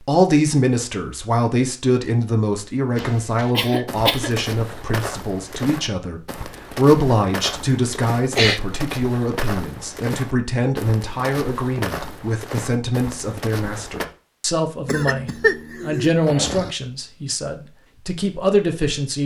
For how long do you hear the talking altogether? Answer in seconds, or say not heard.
19 s.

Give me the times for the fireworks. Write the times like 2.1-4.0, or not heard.
not heard.